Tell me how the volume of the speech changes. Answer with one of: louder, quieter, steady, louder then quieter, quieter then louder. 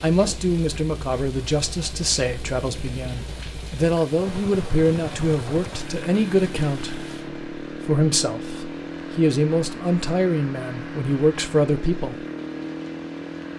steady.